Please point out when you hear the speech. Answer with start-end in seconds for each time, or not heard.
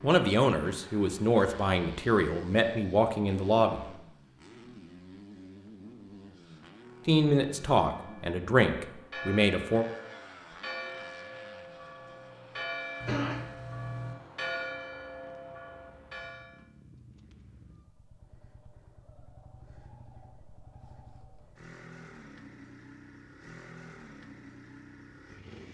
0.0-3.9, 7.0-9.8.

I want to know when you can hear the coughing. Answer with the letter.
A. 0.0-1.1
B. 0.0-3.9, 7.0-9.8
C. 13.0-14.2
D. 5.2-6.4
C.